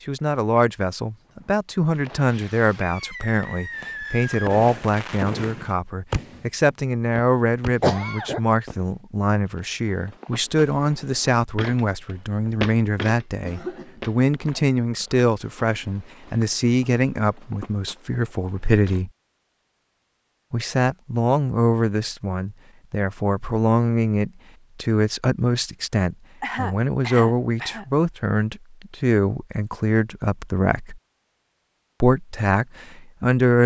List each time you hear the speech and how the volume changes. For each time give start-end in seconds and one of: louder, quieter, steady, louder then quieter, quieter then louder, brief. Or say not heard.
0.1-19.1 steady
20.5-31.0 steady
32.0-33.6 brief.